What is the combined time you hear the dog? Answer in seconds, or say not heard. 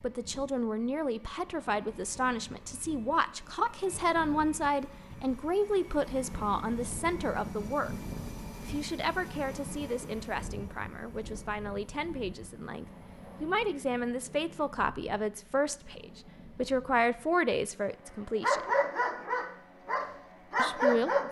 3 s.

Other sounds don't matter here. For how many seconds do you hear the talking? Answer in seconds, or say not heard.
19 s.